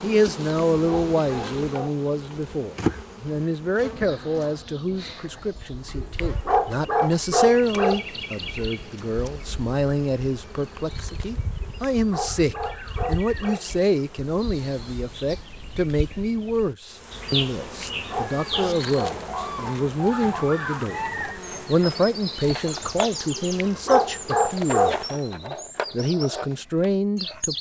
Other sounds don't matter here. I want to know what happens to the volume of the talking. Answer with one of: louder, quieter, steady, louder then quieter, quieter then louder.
steady.